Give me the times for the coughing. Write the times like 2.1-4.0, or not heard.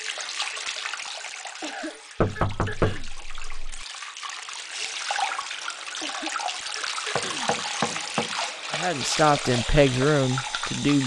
1.6-3.1, 6.0-8.1.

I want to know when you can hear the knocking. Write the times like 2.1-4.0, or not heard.
2.1-3.9, 7.2-8.8.